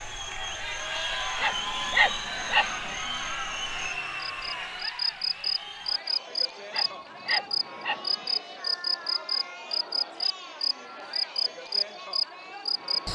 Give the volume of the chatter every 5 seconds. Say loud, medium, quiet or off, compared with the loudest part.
loud, medium, medium.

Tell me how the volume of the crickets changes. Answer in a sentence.
The volume of the crickets goes up.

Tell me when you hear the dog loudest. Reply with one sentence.
The volume of the dog peaks at 2 seconds.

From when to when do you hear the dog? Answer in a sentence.
You can hear the dog from 1.4 to 2.7 s and from 6.7 to 8.1 s.